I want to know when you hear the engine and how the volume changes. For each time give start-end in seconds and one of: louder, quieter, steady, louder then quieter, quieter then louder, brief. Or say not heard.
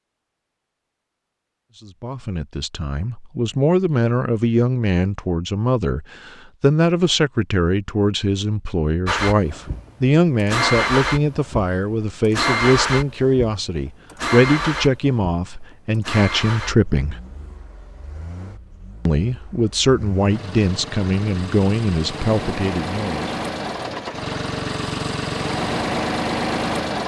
9.1-27.0 quieter then louder.